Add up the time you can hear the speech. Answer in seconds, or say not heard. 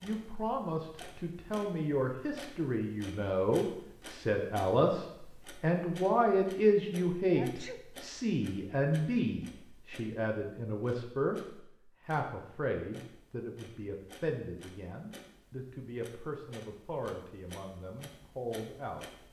19 s.